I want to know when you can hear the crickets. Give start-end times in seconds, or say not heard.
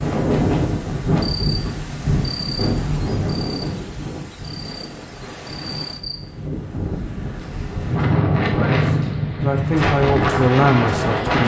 0.0-6.2.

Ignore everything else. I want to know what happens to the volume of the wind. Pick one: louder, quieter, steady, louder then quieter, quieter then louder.
quieter then louder.